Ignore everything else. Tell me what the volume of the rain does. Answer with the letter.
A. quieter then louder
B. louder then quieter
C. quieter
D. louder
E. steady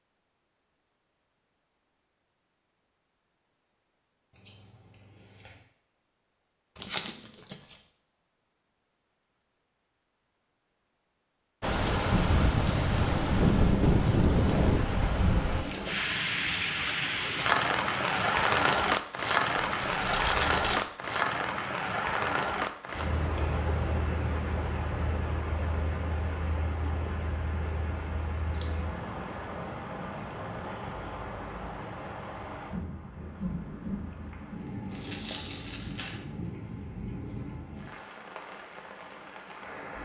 C.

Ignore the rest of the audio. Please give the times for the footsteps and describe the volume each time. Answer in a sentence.
You can't hear the footsteps here.